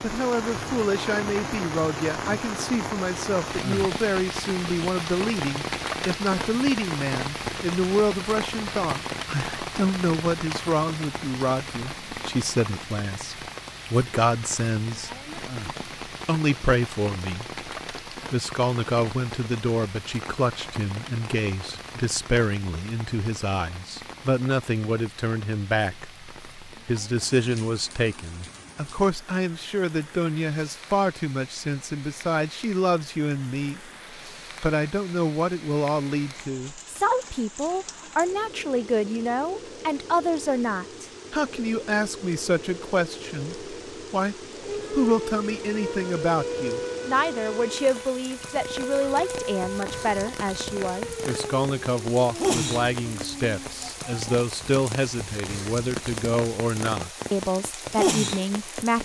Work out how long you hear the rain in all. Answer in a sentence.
The rain can be heard for 59 seconds in total.